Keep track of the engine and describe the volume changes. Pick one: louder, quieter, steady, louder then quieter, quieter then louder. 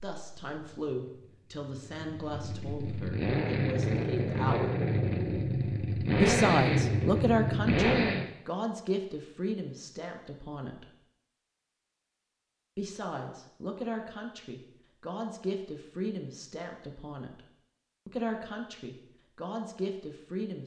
louder.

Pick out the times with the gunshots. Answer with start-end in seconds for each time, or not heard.
not heard.